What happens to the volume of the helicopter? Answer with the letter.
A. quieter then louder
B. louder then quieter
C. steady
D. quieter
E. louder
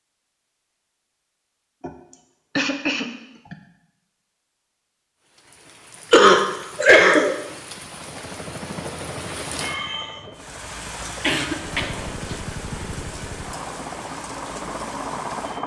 A.